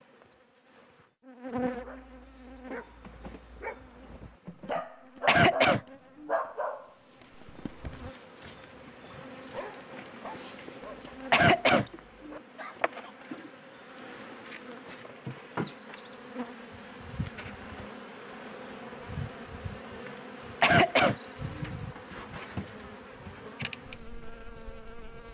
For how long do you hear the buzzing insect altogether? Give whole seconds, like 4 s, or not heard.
25 s.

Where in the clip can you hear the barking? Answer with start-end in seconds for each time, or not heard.
1.7-13.2.